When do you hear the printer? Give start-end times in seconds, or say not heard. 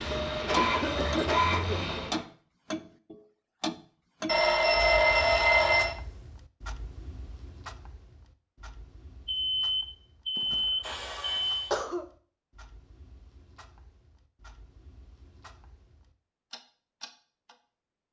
0.0-2.2.